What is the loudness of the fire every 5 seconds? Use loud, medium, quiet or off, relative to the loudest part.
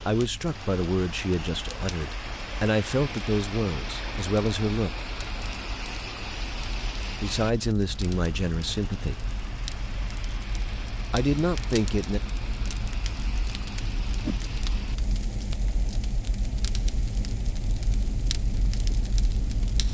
medium, medium, loud, loud.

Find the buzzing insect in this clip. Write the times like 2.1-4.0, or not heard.
not heard.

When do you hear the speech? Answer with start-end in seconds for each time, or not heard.
0.1-4.9, 7.2-9.2, 11.1-12.2.